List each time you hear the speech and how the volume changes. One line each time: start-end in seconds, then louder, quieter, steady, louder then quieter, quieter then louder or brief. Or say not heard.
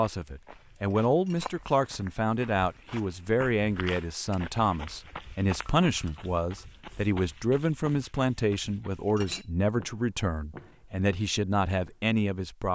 0.0-12.6 steady.